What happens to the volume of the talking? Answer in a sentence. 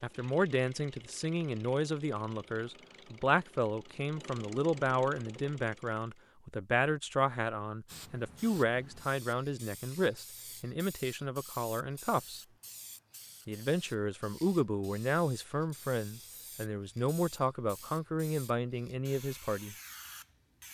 The loudness of the talking stays about the same.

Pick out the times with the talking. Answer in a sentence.
You can hear the talking from 0.0 to 12.4 s and from 13.4 to 19.8 s.